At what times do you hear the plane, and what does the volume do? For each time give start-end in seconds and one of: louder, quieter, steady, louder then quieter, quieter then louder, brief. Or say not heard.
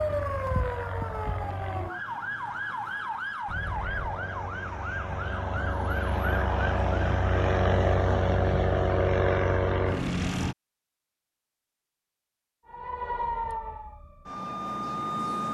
0.0-1.9 brief
3.5-10.6 louder.